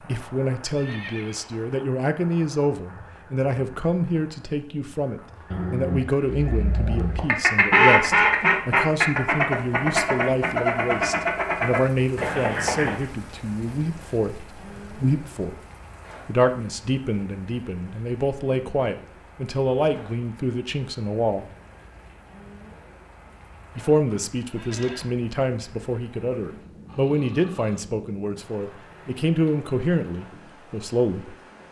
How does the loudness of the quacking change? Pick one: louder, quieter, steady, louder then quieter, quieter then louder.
quieter.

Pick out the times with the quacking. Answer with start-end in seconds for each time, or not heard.
6.5-13.1.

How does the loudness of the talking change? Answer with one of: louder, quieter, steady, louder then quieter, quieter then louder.
steady.